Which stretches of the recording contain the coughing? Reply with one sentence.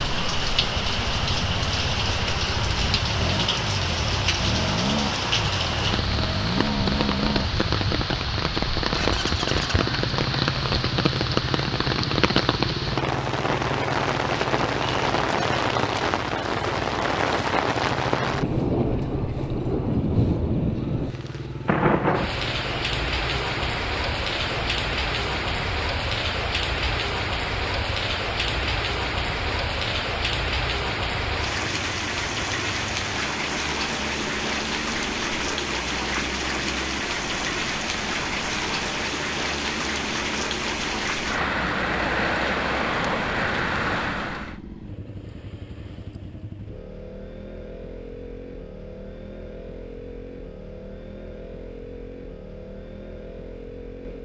The coughing can't be heard in this clip.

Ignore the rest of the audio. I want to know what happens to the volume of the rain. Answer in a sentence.
The volume of the rain stays about the same.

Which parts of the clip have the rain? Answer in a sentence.
You can hear the rain from 0.0 to 44.5 s.